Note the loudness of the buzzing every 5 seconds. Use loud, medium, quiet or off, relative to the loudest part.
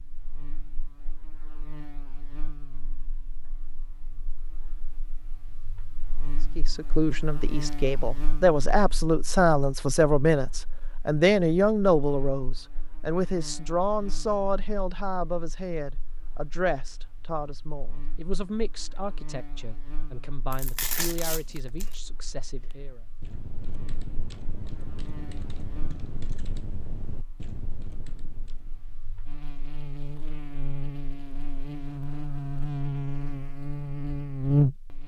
quiet, quiet, quiet, quiet, quiet, quiet, loud.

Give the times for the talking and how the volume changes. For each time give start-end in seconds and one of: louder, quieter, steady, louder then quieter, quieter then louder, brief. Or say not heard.
6.5-23.0 quieter.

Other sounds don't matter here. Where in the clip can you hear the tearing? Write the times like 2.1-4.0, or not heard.
20.5-21.9.